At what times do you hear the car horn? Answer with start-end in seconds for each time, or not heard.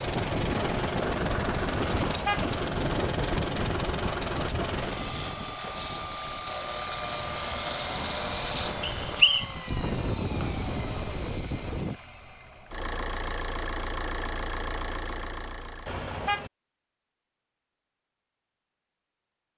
1.9-2.5, 15.8-16.5.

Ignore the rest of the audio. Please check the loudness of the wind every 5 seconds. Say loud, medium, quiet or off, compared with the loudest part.
loud, medium, loud, off.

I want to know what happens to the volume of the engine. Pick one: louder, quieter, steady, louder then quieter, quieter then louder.
quieter then louder.